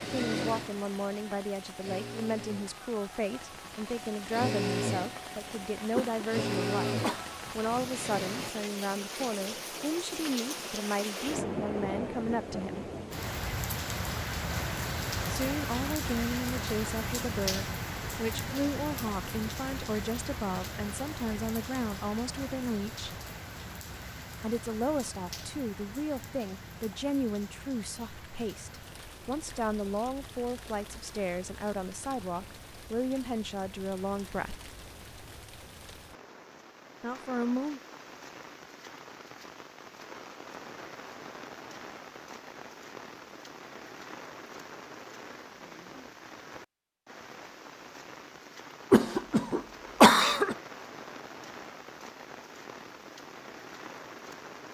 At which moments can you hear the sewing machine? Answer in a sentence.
You can hear the sewing machine from 0.0 to 8.5 s.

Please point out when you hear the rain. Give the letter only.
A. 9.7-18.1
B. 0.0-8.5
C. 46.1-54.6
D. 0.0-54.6
D.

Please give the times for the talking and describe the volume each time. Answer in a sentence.
The talking can be heard from 0.0 to 12.9 s, at a steady volume; from 15.3 to 23.2 s, at a steady volume; from 24.4 to 34.6 s, at a steady volume; and briefly from 37.0 to 37.8 s.